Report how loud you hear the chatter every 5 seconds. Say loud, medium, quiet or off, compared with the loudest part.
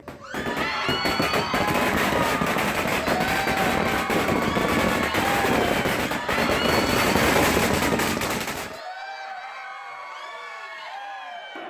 loud, loud, medium.